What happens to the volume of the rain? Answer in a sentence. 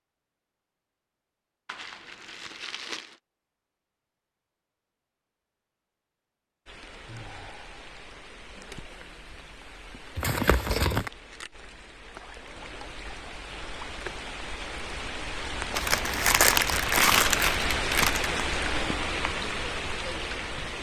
The loudness of the rain goes up.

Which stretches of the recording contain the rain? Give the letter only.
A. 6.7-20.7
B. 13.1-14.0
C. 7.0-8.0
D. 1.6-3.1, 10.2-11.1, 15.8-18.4
A.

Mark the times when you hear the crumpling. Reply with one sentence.
The crumpling can be heard from 1.6 to 3.1 s, from 10.2 to 11.1 s and from 15.8 to 18.4 s.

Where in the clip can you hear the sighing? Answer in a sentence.
The sighing can be heard from 7.0 to 8.0 s.